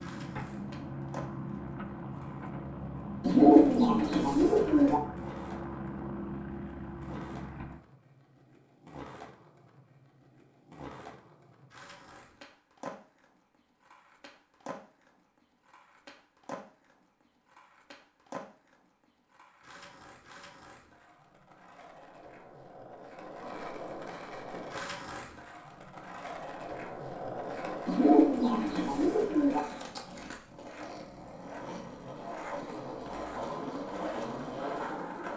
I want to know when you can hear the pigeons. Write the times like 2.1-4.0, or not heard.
3.2-5.0, 27.9-29.6.